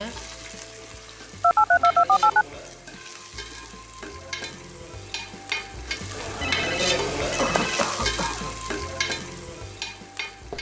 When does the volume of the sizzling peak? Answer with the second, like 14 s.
7 s.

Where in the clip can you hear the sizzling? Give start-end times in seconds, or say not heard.
0.0-10.5.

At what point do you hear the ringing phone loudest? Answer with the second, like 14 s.
2 s.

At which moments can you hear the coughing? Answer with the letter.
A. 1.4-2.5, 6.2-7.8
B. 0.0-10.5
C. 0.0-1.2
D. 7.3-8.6
D.